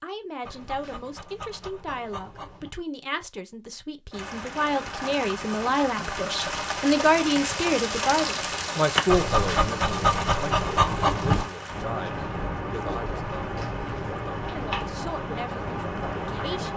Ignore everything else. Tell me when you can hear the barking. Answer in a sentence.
You can hear the barking from 0.4 to 2.7 s and from 9.1 to 11.4 s.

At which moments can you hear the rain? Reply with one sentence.
The rain can be heard from 4.1 to 16.7 s.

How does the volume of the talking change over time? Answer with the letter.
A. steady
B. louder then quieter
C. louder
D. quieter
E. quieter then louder
B.